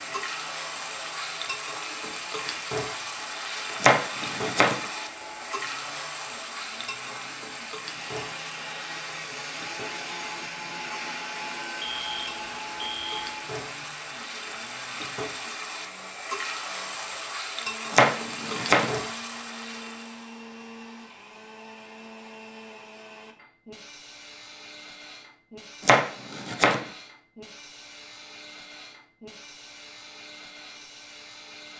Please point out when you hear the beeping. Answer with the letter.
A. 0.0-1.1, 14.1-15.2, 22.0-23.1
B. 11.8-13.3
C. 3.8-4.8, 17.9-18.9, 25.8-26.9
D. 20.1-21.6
B.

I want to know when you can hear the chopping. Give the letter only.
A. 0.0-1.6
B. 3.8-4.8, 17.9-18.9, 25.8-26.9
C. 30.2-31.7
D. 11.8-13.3
B.